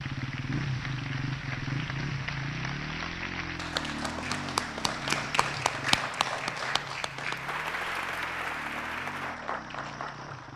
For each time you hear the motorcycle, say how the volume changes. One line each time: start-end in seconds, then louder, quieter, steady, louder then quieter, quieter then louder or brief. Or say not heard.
0.0-10.5 quieter.